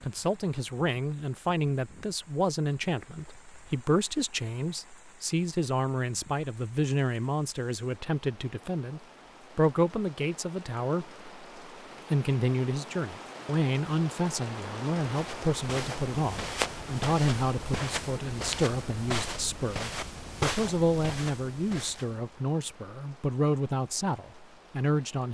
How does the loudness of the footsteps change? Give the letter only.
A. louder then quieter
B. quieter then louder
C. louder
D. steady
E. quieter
D.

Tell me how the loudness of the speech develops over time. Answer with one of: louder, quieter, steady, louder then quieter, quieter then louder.
steady.